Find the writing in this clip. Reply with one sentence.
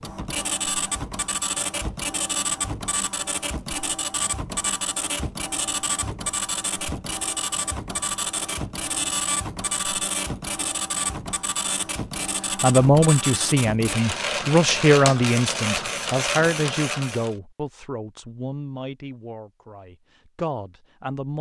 The writing can't be heard in this clip.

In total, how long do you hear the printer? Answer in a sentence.
The printer can be heard for 17 seconds in total.